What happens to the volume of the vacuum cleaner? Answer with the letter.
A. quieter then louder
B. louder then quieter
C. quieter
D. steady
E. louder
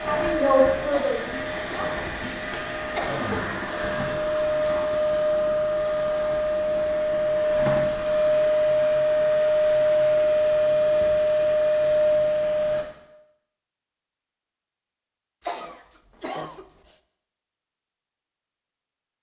E.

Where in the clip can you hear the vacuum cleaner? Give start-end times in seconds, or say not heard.
0.0-12.8.